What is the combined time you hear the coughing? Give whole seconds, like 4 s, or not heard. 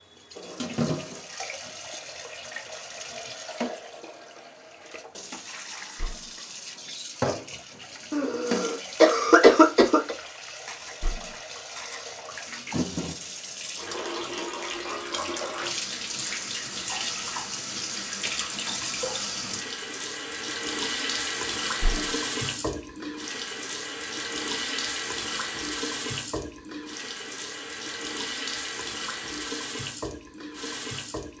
2 s.